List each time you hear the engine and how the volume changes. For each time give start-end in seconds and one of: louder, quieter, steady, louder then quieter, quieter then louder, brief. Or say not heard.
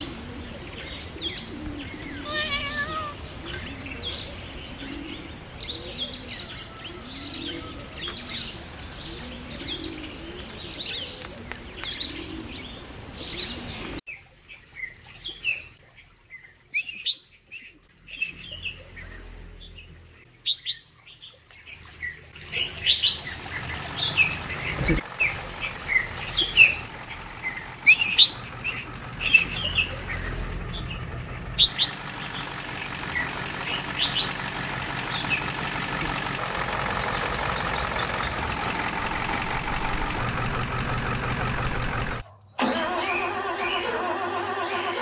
23.2-44.9 louder.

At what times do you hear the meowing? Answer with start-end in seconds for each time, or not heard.
2.2-3.6.